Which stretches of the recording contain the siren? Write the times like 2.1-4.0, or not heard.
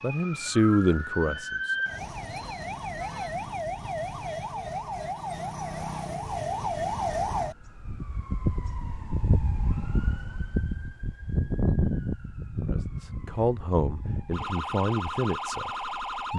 0.0-16.3.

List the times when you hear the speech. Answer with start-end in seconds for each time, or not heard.
0.0-1.8, 12.7-16.3.